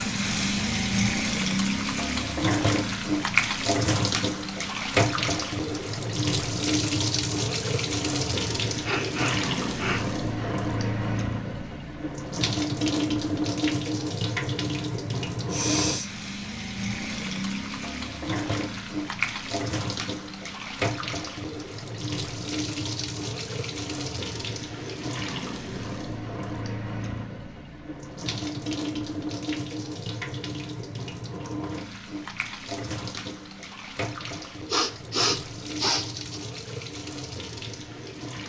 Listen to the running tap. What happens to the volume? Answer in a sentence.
The loudness of the running tap goes down.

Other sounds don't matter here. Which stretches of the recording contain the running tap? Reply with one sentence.
You can hear the running tap from 0.0 to 38.4 s.